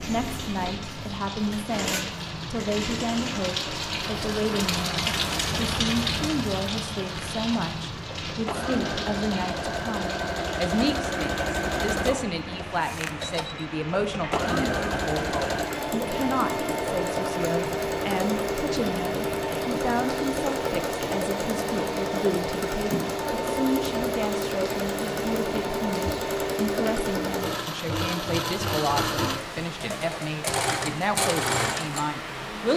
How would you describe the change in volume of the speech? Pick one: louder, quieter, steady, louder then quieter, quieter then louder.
steady.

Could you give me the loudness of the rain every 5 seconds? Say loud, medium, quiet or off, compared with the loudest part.
loud, loud, medium, medium, medium, medium, medium.